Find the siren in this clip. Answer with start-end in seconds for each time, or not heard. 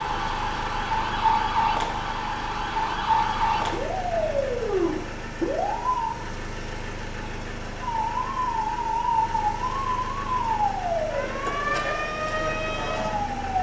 0.0-6.2, 7.8-13.5.